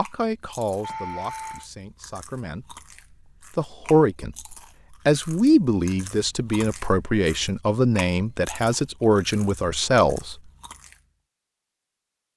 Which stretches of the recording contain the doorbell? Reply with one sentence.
You can hear the doorbell from 0.8 to 1.6 s.